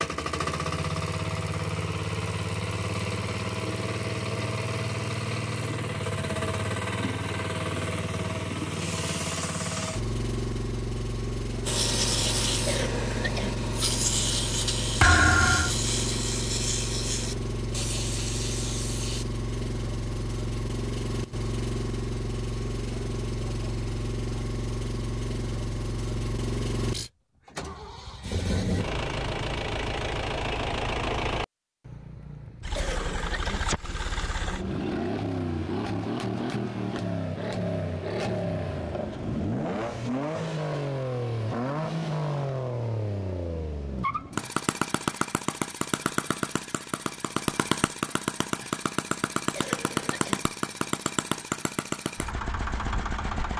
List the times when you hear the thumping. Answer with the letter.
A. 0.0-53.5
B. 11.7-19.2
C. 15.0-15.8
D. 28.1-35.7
C.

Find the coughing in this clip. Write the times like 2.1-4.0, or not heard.
12.7-13.6, 32.8-33.6, 49.5-50.4.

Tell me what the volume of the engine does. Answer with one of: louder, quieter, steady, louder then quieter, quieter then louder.
steady.